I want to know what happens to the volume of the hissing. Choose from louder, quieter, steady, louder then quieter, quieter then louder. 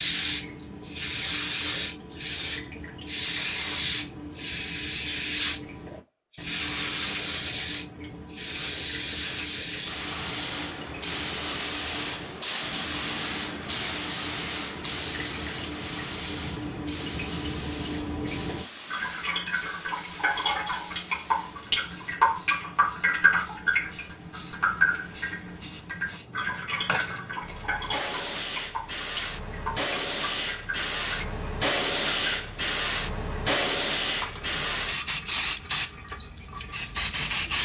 quieter then louder.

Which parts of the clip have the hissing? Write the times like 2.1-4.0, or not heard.
0.0-37.5.